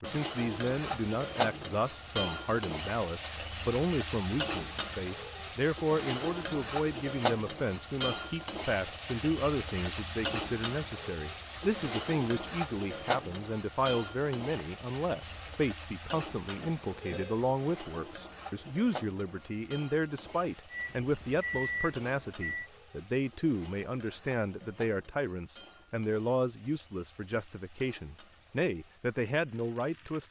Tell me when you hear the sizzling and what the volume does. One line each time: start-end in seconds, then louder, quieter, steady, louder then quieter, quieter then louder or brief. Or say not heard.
0.0-30.2 quieter.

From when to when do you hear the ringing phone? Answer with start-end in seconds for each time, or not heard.
16.4-17.4.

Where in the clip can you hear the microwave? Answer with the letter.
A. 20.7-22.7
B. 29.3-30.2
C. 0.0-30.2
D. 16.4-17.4
A.